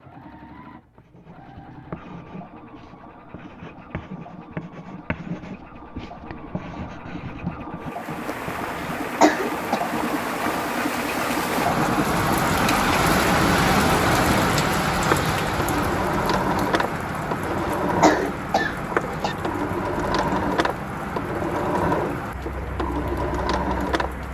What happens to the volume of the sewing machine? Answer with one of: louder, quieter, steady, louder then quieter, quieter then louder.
louder.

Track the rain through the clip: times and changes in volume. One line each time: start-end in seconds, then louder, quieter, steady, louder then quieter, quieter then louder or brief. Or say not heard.
7.8-24.2 louder then quieter.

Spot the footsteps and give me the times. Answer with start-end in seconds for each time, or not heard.
not heard.